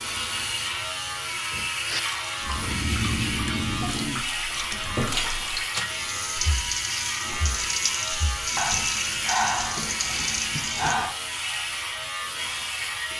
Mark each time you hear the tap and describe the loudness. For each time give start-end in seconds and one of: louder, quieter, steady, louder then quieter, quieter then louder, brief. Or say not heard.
1.9-10.9 louder.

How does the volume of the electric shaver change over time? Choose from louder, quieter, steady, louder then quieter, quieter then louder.
steady.